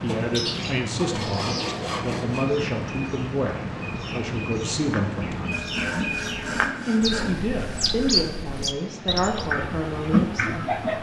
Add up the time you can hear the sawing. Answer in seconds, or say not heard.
5 s.